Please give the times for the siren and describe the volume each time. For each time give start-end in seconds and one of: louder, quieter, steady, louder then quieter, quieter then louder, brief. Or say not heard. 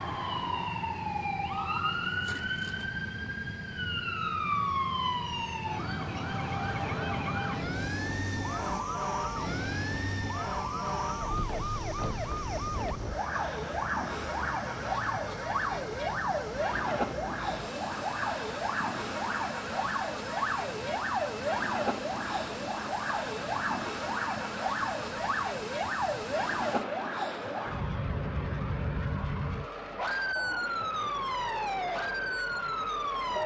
0.0-33.4 steady.